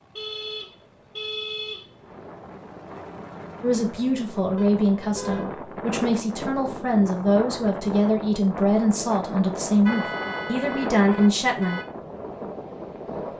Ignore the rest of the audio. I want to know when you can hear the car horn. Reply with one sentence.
You can hear the car horn from 0.1 to 2.2 s, from 4.5 to 5.5 s and from 9.8 to 11.8 s.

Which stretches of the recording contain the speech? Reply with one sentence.
The speech can be heard from 3.6 to 11.8 s.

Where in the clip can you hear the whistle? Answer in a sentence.
You can't hear the whistle here.